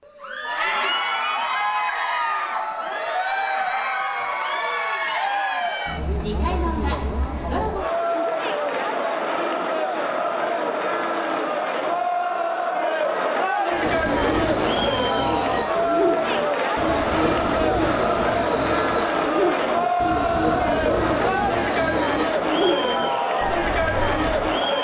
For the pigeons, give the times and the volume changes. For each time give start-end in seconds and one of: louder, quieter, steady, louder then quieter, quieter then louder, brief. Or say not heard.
13.7-24.6 steady.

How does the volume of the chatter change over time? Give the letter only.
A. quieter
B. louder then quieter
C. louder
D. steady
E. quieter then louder
D.